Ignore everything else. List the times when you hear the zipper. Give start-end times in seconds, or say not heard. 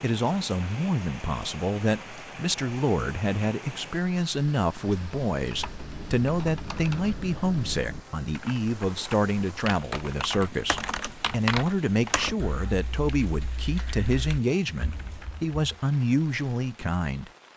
not heard.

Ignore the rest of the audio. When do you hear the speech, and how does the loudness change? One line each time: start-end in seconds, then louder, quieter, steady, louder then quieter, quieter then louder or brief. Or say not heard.
0.0-17.3 steady.